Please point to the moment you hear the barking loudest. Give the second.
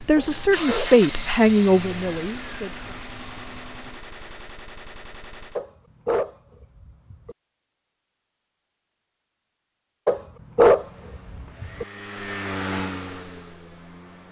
11 s.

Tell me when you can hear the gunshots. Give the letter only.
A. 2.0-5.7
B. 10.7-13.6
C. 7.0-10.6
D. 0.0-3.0
A.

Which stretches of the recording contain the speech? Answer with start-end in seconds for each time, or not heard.
0.0-3.0.